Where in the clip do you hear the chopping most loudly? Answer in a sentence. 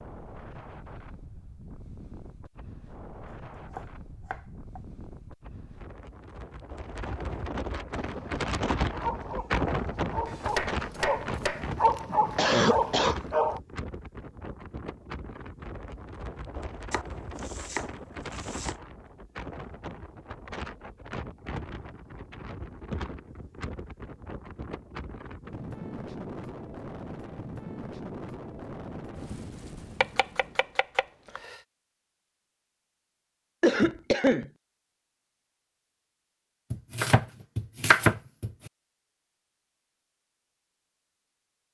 The volume of the chopping peaks at 38 seconds.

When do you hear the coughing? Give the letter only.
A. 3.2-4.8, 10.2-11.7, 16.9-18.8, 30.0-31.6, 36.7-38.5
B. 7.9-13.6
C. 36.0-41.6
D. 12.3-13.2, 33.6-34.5
D.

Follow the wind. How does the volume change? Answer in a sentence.
The volume of the wind goes up, then down.